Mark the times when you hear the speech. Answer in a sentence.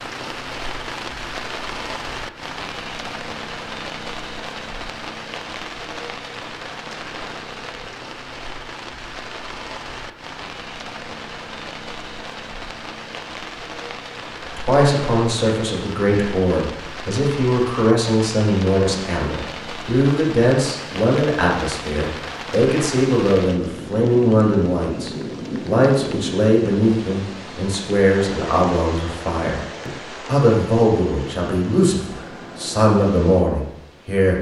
You can hear the speech from 14.4 to 34.3 s.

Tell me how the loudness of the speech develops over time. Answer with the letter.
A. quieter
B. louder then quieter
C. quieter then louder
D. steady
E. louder
D.